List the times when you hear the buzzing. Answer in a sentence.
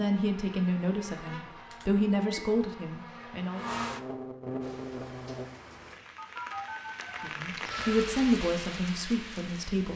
The buzzing can be heard from 0.0 to 5.5 s.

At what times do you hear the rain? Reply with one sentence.
You can hear the rain from 4.6 to 9.9 s.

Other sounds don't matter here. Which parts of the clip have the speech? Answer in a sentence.
You can hear the speech from 0.0 to 3.7 s and from 7.2 to 9.9 s.